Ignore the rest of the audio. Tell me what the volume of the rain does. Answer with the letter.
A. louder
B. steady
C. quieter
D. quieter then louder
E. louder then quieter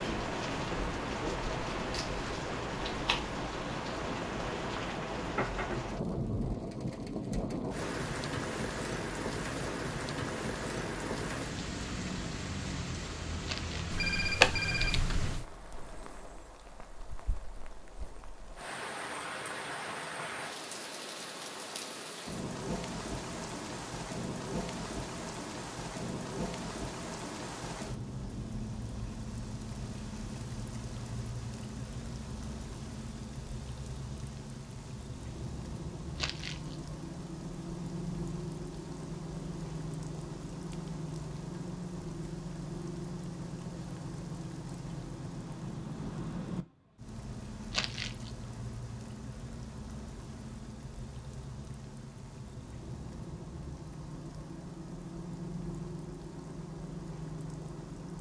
C.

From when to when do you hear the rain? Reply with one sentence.
You can hear the rain from 0.0 to 58.1 s.